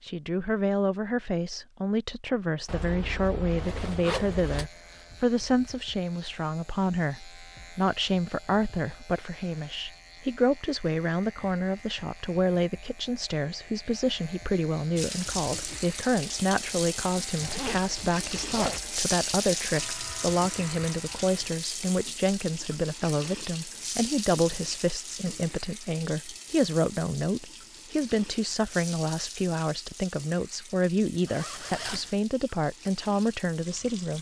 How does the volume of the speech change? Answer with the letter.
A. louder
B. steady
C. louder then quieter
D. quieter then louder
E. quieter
B.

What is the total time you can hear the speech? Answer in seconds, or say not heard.
34 s.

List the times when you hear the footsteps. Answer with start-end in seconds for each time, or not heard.
not heard.